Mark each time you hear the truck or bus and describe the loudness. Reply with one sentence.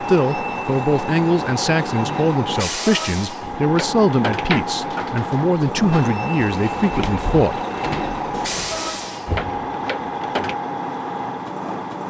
The truck or bus can be heard from 0.0 to 12.0 s, at a steady volume.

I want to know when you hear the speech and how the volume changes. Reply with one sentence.
You can hear the speech from 0.0 to 7.6 s, at a steady volume.